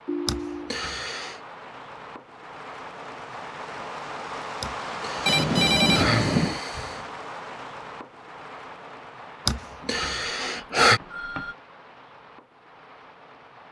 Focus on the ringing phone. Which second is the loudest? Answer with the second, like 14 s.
6 s.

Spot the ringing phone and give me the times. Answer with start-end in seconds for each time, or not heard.
0.1-0.8, 5.2-6.6, 9.8-11.6.